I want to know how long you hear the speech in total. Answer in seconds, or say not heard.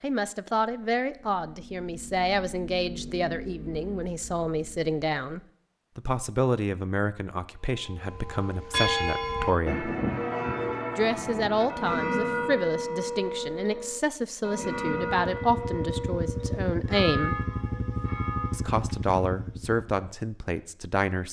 19 s.